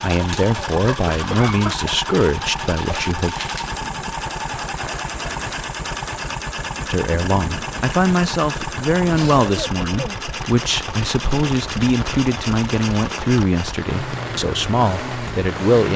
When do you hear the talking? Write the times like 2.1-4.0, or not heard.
0.0-3.4, 6.9-15.9.